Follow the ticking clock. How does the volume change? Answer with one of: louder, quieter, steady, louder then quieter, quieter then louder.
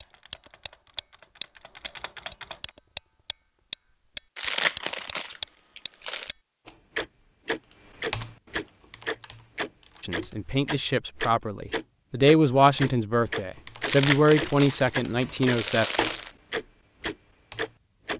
steady.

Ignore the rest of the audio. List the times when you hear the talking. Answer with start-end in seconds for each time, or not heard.
10.0-15.8.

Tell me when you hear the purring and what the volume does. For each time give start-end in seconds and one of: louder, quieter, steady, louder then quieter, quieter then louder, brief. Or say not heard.
not heard.